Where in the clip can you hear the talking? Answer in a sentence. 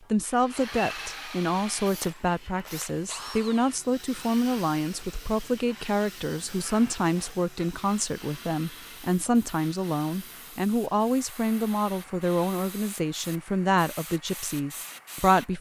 The talking can be heard from 0.1 to 15.5 s.